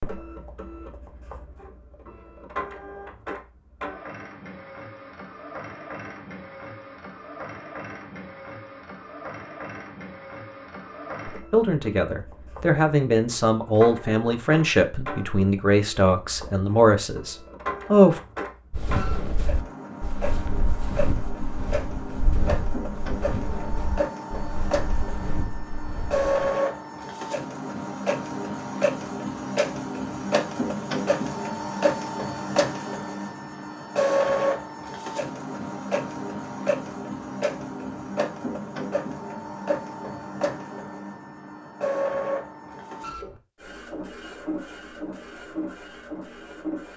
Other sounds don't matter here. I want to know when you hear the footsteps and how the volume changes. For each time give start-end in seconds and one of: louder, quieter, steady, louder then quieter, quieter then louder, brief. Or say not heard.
18.7-26.3 steady.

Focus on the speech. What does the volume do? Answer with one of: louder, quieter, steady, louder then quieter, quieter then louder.
steady.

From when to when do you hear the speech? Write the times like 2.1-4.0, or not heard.
11.5-18.2.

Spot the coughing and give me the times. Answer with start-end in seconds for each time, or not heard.
not heard.